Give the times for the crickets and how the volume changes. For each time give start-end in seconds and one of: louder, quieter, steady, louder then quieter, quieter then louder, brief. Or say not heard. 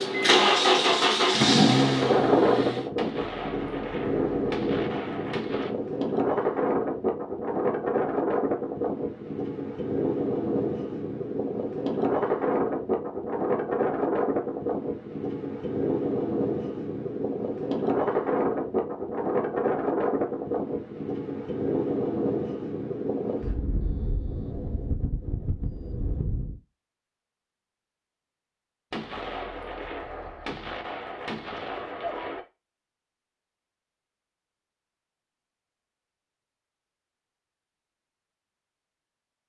not heard.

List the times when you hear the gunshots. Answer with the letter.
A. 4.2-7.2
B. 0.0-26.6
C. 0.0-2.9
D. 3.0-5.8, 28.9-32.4
D.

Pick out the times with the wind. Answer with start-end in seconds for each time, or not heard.
0.0-26.6.